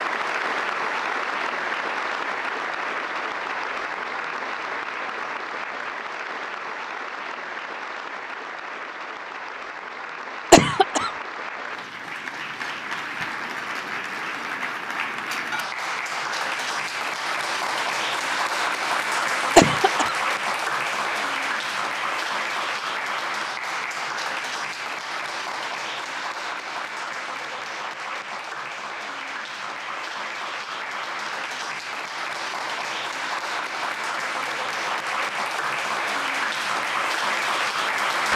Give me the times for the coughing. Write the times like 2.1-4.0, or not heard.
10.5-11.1, 19.6-20.1.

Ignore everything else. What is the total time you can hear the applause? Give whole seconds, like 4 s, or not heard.
38 s.